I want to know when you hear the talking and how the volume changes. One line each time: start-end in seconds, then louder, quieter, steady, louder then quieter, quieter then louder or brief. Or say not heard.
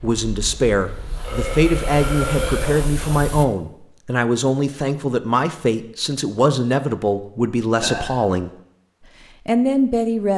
0.0-8.5 steady
9.4-10.3 brief.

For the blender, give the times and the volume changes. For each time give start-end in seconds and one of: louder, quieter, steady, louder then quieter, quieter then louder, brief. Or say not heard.
not heard.